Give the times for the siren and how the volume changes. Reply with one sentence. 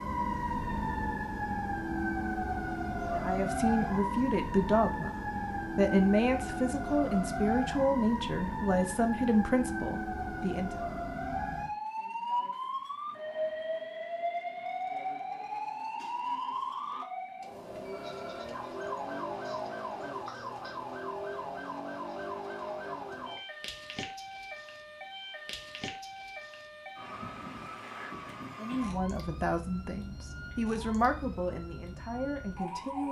You can hear the siren from 0.0 to 33.0 s, getting quieter.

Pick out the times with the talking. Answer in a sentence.
The talking can be heard from 3.1 to 10.7 s and from 28.6 to 33.0 s.